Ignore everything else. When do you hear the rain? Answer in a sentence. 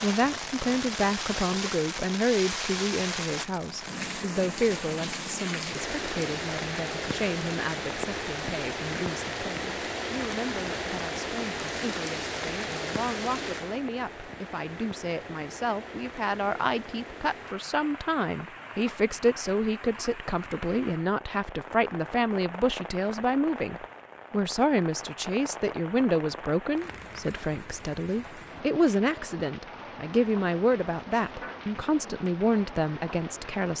The rain can be heard from 0.0 to 33.7 s.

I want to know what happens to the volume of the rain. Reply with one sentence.
The volume of the rain goes down.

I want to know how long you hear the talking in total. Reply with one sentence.
The talking can be heard for 34 seconds in total.